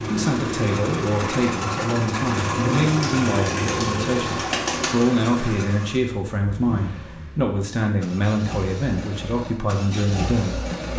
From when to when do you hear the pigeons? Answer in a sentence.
You can hear the pigeons from 2.4 to 5.0 s.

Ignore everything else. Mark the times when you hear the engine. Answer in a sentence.
You can hear the engine from 0.0 to 10.9 s.